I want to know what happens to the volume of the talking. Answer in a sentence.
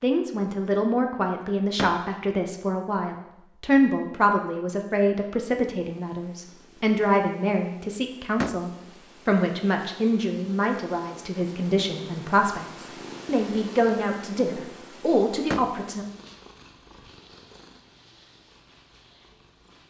The volume of the talking stays about the same.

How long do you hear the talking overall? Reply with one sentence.
The talking can be heard for 16 seconds in total.